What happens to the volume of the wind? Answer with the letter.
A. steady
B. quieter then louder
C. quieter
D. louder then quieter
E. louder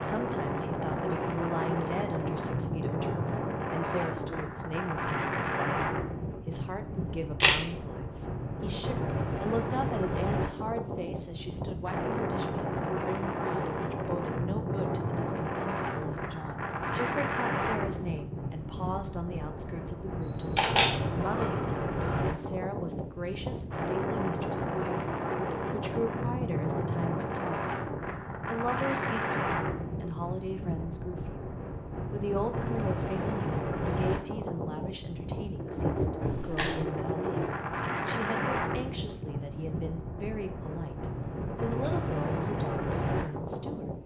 A.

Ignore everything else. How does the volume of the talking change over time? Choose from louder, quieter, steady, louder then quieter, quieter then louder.
steady.